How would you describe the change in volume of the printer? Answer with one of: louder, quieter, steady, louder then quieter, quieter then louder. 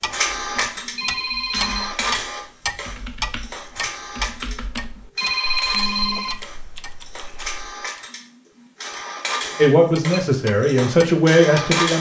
quieter then louder.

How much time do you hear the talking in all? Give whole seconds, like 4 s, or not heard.
2 s.